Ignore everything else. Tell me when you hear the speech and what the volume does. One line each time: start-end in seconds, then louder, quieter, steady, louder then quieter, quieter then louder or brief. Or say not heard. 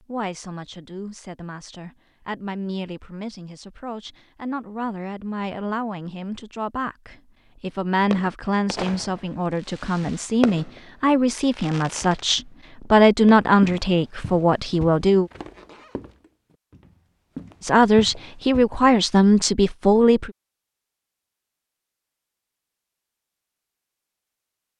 0.0-15.3 louder
17.6-20.3 brief.